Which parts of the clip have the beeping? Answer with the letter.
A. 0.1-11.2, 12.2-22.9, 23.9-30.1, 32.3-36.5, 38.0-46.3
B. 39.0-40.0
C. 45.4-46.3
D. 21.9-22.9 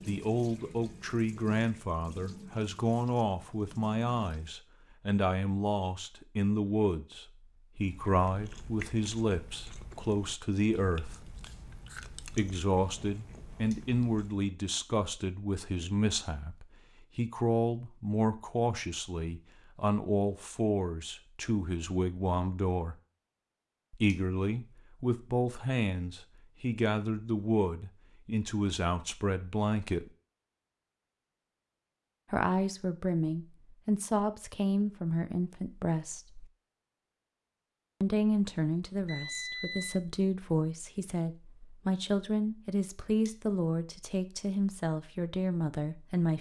B.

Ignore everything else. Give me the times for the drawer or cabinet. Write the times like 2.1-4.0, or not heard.
not heard.